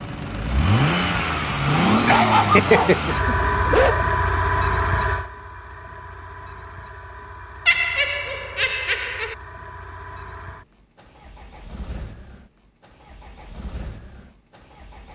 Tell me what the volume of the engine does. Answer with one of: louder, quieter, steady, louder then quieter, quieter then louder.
quieter.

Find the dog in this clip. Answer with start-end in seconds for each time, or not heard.
1.9-4.0.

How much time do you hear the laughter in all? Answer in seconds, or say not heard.
3 s.